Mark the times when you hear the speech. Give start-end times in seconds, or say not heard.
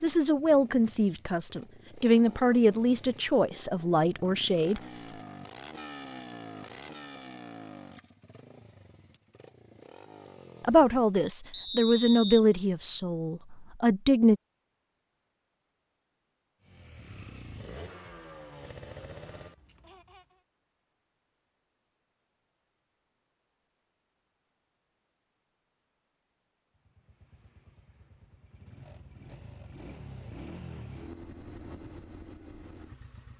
0.0-4.8, 10.6-14.3.